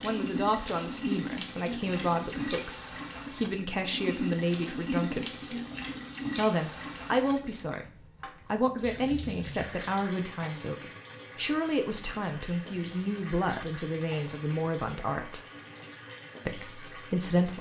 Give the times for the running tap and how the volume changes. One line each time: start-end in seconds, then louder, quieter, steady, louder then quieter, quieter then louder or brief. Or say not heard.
0.0-17.5 quieter.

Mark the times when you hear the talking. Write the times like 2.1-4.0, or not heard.
0.0-5.5, 6.3-7.8, 8.4-15.4, 16.4-17.5.